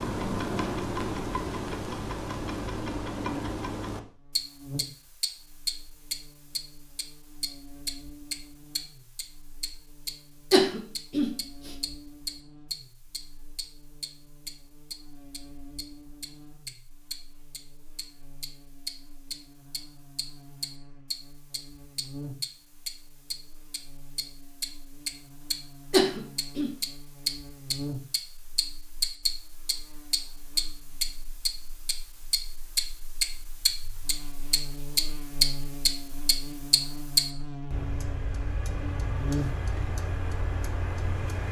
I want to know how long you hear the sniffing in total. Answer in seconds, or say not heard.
2 s.